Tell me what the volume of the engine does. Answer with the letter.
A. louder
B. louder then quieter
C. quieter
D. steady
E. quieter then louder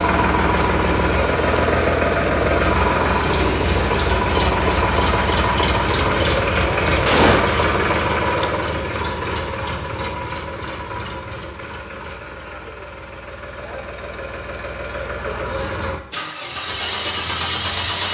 E.